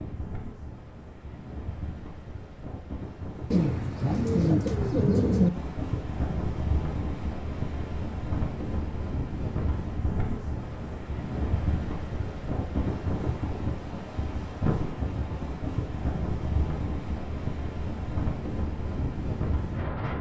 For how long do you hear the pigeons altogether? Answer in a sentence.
You can hear the pigeons for 2 seconds altogether.